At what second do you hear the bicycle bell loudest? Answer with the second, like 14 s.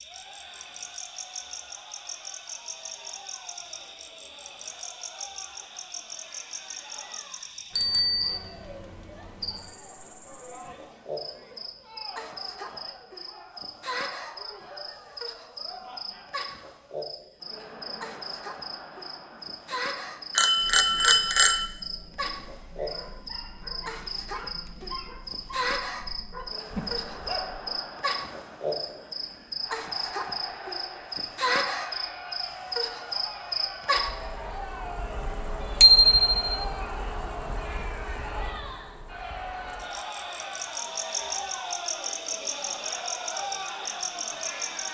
36 s.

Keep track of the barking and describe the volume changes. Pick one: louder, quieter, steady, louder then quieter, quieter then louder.
louder.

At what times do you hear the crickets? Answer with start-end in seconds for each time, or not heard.
0.0-44.8.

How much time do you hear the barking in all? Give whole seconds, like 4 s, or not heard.
5 s.